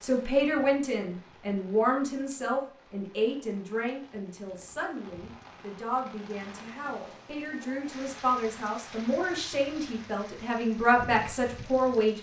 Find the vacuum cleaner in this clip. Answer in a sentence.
You can't hear the vacuum cleaner here.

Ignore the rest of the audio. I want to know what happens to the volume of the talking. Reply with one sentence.
The loudness of the talking goes down, then up.